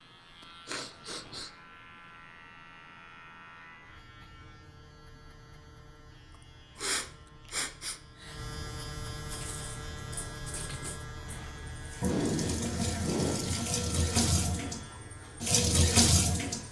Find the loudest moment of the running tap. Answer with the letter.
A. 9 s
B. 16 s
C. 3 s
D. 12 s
B.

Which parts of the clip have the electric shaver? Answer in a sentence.
You can hear the electric shaver from 0.0 to 16.6 s.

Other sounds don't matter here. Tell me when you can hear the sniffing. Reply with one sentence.
The sniffing can be heard from 0.7 to 1.5 s, from 6.8 to 8.4 s and from 12.0 to 13.6 s.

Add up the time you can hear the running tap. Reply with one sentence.
The running tap can be heard for 7 seconds in total.